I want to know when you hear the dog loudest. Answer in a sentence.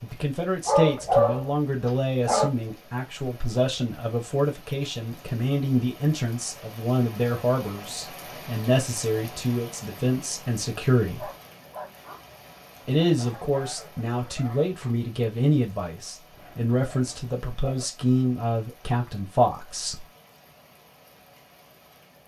The volume of the dog peaks at 1 second.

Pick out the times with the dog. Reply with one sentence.
You can hear the dog from 0.7 to 2.5 s, from 11.0 to 12.2 s and from 16.3 to 17.9 s.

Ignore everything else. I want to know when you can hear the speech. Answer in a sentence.
You can hear the speech from 0.0 to 11.3 s and from 12.8 to 20.1 s.